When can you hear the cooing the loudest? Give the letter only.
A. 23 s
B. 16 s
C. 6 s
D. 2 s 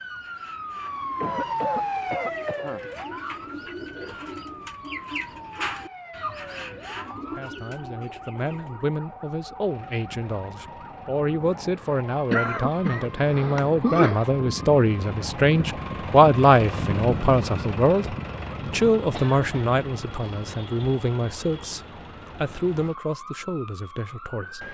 C.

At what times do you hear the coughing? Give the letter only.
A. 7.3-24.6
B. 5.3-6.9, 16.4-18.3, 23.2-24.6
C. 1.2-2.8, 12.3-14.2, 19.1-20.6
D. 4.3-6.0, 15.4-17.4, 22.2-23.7
C.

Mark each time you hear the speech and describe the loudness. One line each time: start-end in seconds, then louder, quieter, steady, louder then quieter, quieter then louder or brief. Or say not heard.
7.3-24.6 louder then quieter.